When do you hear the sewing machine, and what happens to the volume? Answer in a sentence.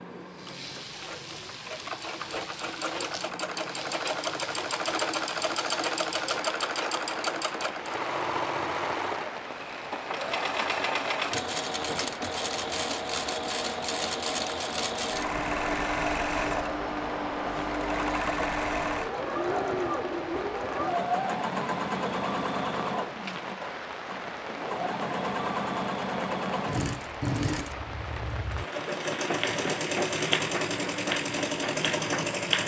You can hear the sewing machine from 0.0 to 32.6 s, at a steady volume.